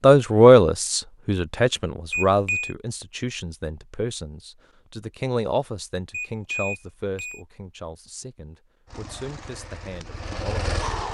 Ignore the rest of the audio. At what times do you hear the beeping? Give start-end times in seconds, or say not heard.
2.1-2.8, 6.1-7.4.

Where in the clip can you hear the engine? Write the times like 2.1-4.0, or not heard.
8.8-11.1.